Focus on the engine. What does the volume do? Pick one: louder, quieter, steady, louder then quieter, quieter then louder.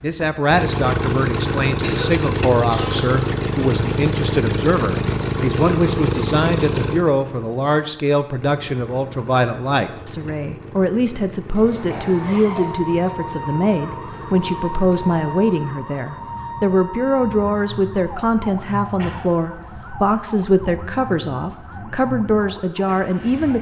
quieter.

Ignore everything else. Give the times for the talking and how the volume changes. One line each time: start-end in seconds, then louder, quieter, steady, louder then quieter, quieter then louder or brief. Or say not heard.
0.0-23.5 steady.